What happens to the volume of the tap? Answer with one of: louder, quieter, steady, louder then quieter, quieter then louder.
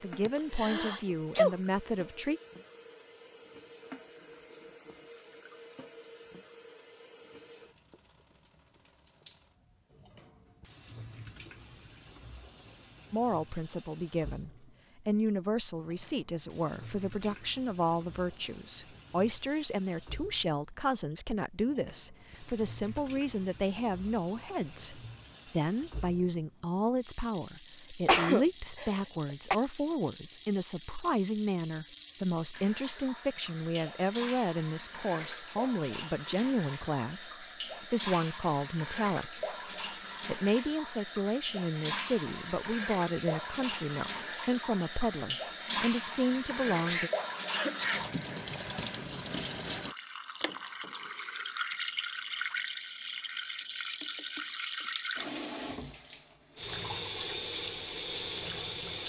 louder.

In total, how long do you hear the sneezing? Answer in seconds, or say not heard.
4 s.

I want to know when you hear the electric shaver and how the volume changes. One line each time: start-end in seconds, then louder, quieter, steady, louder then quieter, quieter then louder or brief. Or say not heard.
not heard.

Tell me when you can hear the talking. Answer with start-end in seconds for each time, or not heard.
0.0-2.4, 13.1-39.5, 40.2-47.1.